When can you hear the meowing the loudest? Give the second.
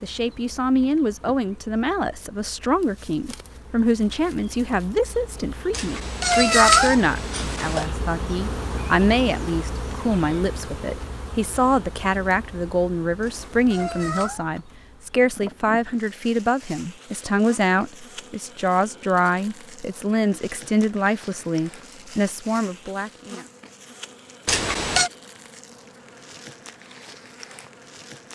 7 s.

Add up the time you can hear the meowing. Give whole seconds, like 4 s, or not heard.
4 s.